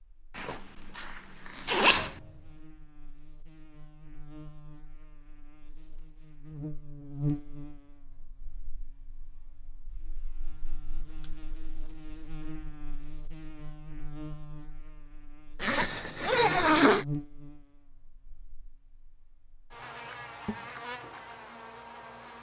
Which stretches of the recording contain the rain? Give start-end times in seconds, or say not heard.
not heard.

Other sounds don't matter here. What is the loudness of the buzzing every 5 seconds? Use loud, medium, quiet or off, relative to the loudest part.
quiet, loud, medium, loud, loud.